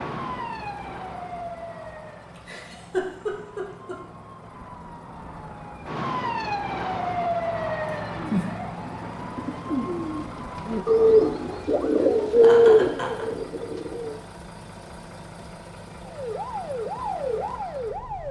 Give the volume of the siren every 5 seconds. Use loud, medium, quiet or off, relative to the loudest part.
medium, loud, medium, loud.